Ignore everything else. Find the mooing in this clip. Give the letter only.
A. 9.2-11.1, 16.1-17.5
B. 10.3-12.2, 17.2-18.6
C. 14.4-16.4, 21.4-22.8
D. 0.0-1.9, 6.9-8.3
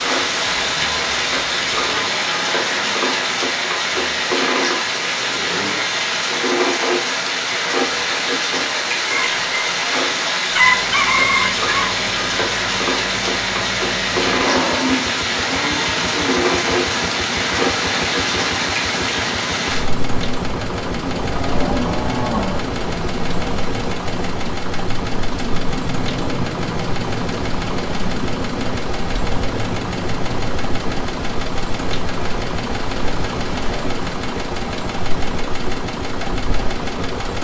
C.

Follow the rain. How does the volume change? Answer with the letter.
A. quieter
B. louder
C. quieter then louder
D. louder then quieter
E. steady
A.